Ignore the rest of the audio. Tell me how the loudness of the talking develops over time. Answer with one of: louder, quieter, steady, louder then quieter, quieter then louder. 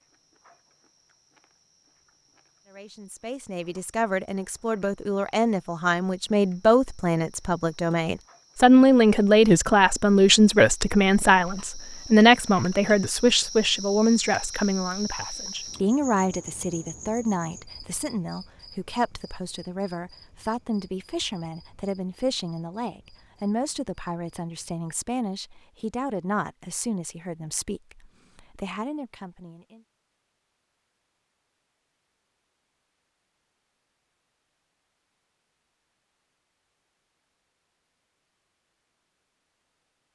louder then quieter.